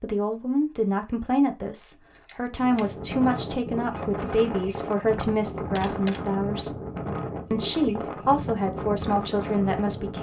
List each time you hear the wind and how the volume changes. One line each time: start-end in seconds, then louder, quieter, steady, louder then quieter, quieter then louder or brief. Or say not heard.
2.5-10.1 steady.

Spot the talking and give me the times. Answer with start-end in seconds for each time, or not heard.
0.0-6.8, 7.5-10.1.